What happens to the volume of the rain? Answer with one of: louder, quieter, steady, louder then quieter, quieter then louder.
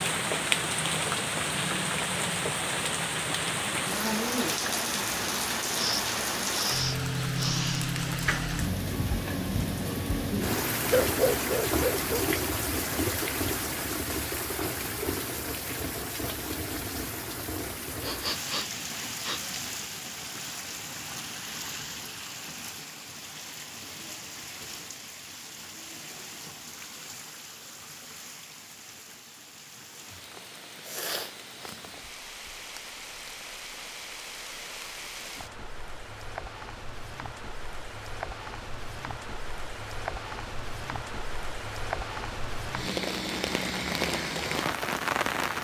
quieter then louder.